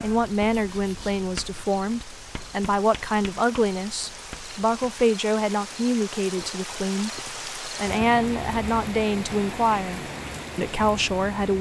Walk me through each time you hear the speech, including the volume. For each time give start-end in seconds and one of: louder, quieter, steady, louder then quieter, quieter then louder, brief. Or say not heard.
0.0-11.5 steady.